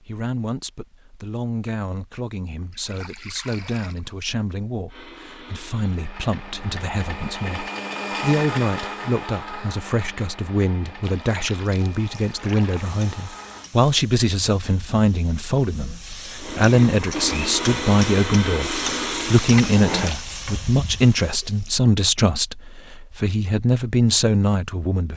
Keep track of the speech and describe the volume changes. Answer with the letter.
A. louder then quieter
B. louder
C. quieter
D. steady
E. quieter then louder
B.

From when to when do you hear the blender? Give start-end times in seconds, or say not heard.
4.8-13.7, 16.4-20.1.